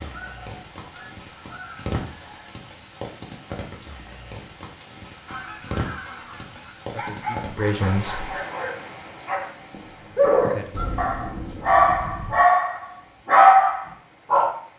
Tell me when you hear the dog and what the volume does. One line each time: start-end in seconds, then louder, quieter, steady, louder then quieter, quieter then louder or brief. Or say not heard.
7.0-14.5 louder.